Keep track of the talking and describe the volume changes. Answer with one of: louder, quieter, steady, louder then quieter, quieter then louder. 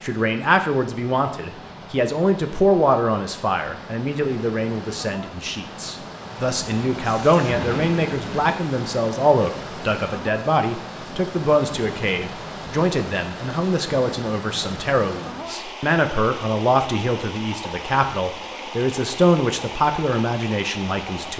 steady.